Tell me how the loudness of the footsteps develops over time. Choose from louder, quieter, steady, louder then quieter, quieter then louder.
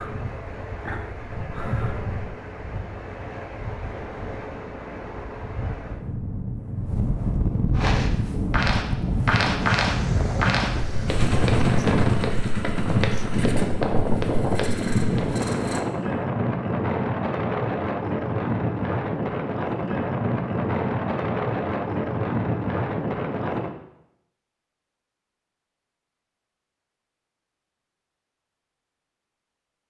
quieter.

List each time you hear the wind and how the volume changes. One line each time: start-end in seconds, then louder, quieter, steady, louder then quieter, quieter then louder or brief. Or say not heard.
0.0-23.8 louder.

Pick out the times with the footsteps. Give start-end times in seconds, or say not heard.
7.8-15.3.